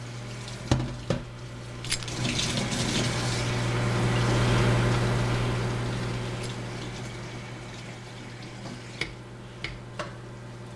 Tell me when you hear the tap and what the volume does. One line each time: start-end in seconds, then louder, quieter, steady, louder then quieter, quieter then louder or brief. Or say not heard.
0.0-10.7 quieter.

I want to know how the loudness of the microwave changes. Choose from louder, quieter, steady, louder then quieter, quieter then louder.
louder then quieter.